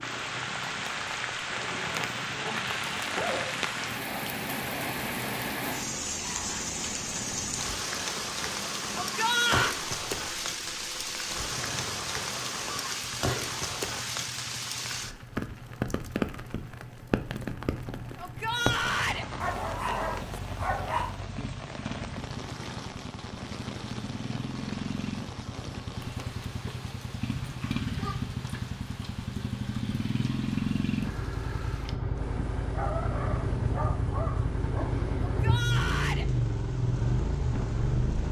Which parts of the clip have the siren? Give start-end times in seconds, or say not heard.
not heard.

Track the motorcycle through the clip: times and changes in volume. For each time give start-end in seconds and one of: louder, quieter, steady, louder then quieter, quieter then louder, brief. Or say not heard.
0.0-38.2 louder.